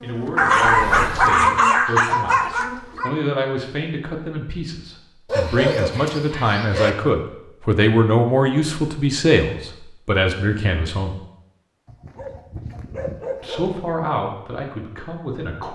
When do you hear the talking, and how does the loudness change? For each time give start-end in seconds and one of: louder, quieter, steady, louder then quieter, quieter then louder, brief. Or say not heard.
0.0-11.2 louder
13.4-15.7 brief.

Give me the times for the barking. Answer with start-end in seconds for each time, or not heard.
0.3-3.1, 5.2-6.9, 11.8-13.8.